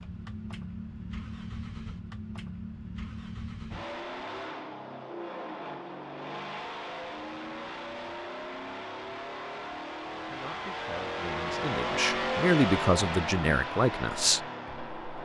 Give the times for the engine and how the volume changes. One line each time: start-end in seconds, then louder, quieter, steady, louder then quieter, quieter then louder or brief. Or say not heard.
0.0-15.2 louder.